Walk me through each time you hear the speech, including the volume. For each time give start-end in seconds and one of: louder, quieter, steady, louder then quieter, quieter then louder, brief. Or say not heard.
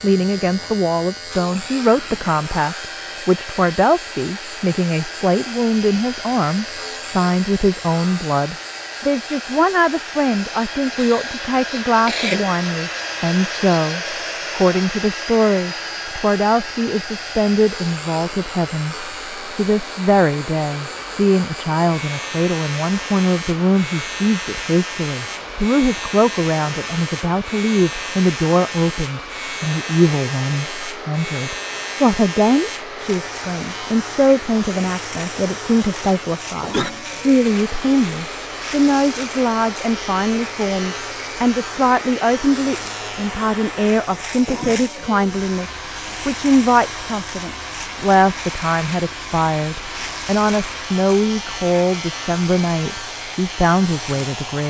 0.0-54.6 steady.